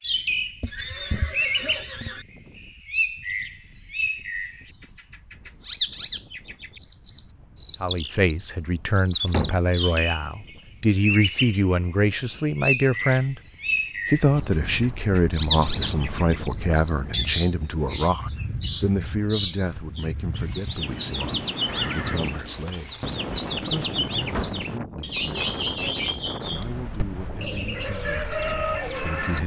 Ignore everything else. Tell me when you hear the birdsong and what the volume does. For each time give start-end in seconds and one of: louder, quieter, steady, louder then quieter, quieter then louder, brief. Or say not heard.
0.0-29.4 steady.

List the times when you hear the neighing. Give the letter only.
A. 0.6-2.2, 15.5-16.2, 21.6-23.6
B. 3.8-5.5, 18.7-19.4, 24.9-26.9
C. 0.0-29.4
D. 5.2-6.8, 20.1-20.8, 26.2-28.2
A.